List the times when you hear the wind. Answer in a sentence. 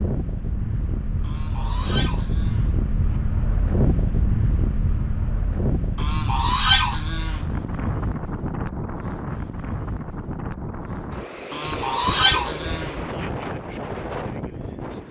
The wind can be heard from 0.0 to 15.0 s.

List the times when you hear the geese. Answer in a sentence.
You can hear the geese from 1.2 to 3.2 s, from 6.0 to 7.5 s and from 11.5 to 13.4 s.